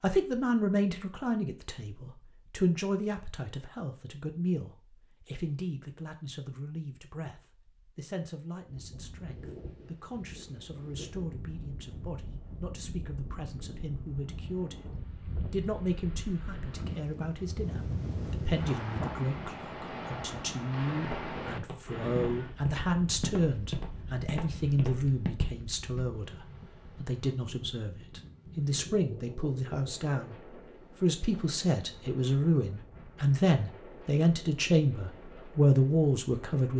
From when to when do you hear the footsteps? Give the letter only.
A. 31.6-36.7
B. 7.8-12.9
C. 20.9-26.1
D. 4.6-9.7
C.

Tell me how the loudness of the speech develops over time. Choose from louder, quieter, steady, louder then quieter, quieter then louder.
quieter then louder.